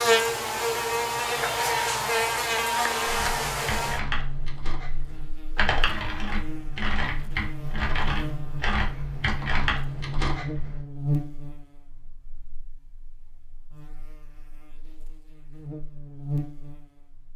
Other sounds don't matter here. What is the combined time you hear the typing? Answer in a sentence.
You can hear the typing for 8 seconds altogether.